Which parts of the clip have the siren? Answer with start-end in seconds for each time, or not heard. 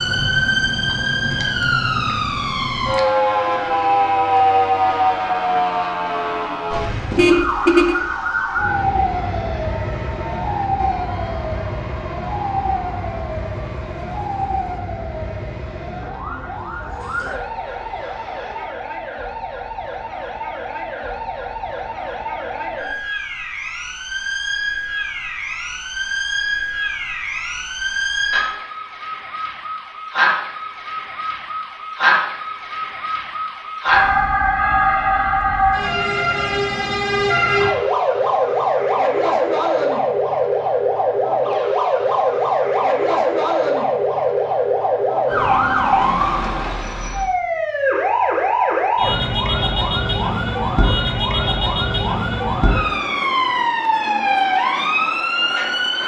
0.0-56.0.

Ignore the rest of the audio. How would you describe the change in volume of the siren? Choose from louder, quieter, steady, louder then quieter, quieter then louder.
quieter then louder.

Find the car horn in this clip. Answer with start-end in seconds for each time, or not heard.
6.8-8.0.